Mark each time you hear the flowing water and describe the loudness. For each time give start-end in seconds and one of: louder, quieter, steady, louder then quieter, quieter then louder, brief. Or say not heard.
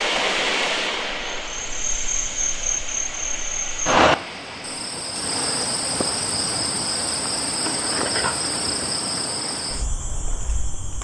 0.0-5.7 quieter.